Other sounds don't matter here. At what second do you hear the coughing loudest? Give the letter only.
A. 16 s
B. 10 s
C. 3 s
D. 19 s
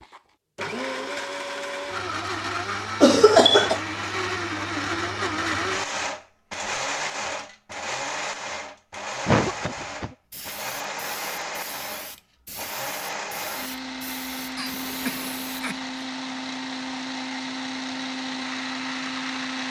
C.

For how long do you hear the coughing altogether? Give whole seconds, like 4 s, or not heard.
3 s.